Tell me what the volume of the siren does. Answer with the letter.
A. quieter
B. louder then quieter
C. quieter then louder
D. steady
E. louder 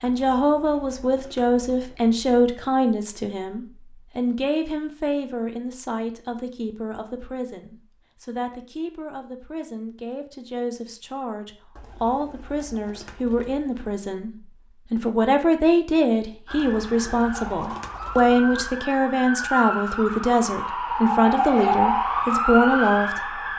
E.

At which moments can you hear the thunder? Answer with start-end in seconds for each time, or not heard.
not heard.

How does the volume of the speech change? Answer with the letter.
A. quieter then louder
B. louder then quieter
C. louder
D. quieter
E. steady
A.